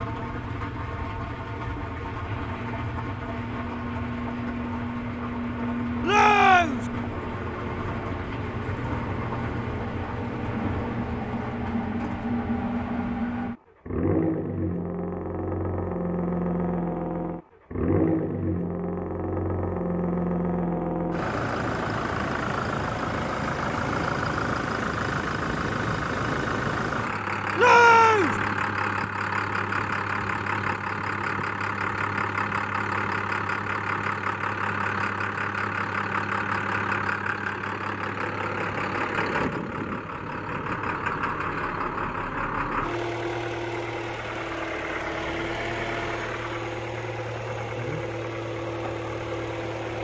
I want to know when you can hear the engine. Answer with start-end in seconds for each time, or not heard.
0.0-49.9.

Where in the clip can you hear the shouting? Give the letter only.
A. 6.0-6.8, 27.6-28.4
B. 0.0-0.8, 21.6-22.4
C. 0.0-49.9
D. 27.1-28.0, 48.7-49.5
A.